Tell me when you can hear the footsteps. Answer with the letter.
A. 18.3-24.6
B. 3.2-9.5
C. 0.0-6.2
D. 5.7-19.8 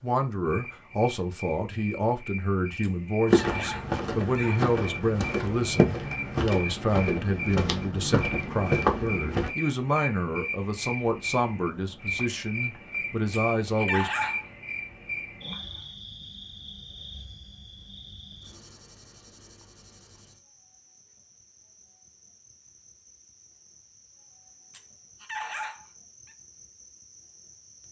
B.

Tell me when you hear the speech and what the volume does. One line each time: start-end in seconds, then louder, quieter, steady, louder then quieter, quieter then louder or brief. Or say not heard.
0.0-14.1 steady.